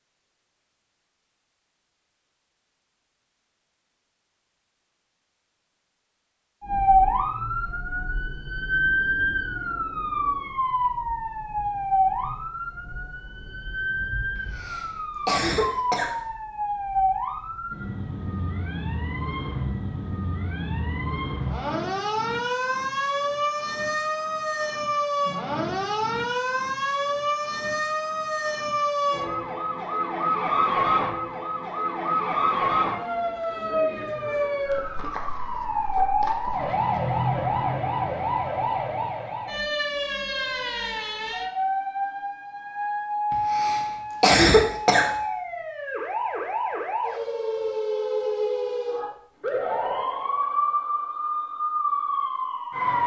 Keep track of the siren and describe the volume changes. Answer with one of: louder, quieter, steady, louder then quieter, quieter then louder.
steady.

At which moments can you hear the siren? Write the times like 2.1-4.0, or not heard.
6.6-53.0.